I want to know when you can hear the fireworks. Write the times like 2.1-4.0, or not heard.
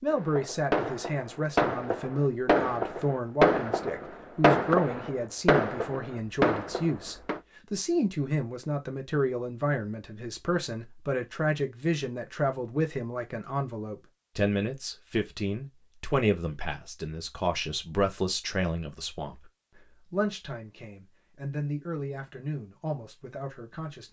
0.1-7.4.